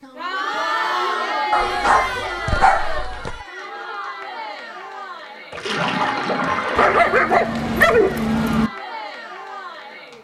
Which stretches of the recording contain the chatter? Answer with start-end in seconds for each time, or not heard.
0.0-10.1.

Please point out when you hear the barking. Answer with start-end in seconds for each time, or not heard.
1.5-3.4, 6.8-8.7.